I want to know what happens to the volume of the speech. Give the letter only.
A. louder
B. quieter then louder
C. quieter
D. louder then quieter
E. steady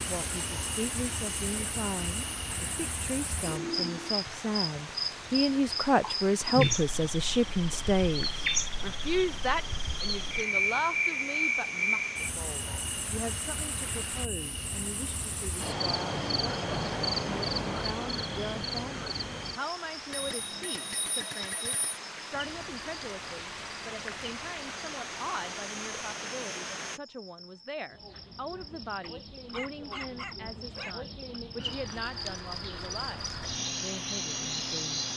C.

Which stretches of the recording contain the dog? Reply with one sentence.
The dog can be heard from 29.0 to 30.9 s.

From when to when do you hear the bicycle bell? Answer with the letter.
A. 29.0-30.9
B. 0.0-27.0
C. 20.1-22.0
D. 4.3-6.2
C.